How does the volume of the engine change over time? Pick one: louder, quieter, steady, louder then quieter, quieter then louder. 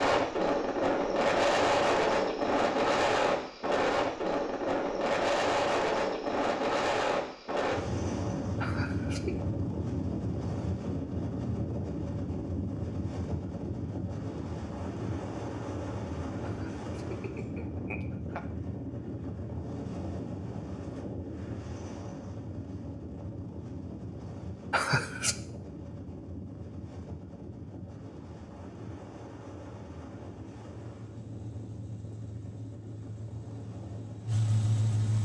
louder.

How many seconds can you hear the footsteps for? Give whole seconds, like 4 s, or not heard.
not heard.